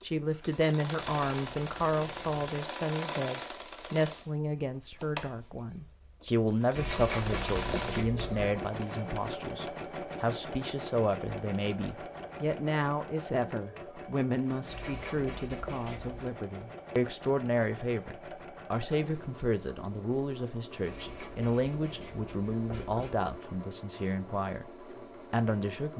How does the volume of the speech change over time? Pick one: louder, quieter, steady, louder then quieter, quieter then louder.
steady.